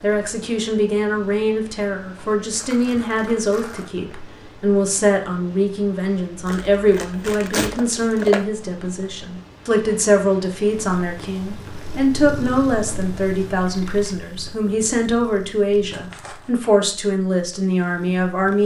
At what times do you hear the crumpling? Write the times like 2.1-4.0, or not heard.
2.5-3.9, 6.5-8.4, 15.9-16.5.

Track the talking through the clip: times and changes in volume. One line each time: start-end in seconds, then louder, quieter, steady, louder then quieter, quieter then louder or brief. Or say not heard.
0.0-18.6 steady.